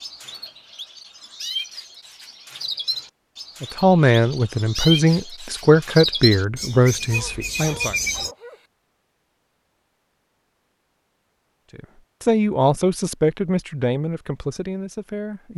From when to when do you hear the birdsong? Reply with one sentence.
The birdsong can be heard from 0.0 to 8.3 s.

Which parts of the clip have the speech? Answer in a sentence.
The speech can be heard from 3.6 to 8.0 s and from 11.8 to 15.5 s.